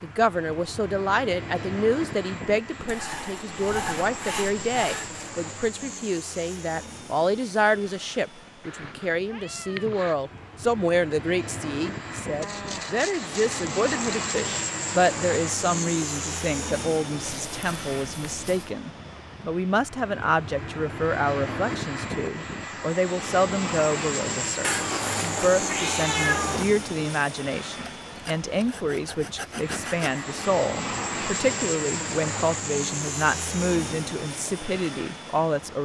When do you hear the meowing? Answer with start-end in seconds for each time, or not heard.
8.7-10.2, 17.2-18.7, 24.6-26.6.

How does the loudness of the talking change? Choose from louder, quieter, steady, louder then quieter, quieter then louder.
steady.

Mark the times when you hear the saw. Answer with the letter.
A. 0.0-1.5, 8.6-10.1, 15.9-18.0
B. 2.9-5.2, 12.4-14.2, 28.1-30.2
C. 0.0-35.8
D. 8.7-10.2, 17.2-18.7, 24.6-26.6
B.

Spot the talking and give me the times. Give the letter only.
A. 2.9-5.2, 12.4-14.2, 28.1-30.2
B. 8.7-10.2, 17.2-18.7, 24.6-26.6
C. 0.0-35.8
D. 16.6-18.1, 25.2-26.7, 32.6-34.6
C.